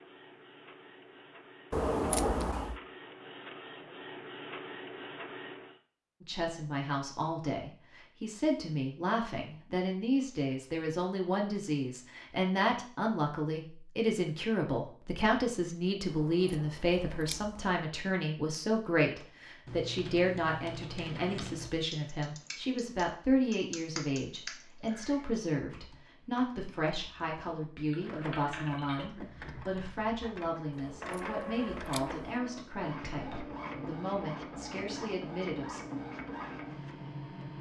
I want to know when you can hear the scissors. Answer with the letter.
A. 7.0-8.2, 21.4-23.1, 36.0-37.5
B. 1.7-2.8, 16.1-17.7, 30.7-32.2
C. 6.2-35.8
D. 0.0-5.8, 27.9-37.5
B.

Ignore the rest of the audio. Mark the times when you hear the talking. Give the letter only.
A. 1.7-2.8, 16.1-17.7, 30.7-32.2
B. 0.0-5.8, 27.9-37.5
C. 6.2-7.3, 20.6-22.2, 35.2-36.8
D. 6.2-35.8
D.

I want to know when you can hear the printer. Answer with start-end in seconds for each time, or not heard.
0.0-5.8, 27.9-37.5.